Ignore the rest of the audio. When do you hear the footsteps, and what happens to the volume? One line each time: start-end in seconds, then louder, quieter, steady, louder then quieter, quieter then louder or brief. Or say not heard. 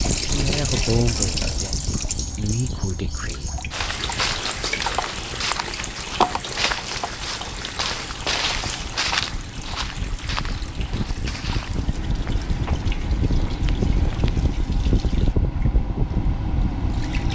3.7-14.6 quieter.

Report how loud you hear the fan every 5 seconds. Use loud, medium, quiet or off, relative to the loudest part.
medium, quiet, loud, loud.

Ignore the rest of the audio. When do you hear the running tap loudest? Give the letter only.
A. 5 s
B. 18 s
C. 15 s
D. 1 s
D.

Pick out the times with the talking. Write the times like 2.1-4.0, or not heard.
0.1-3.5.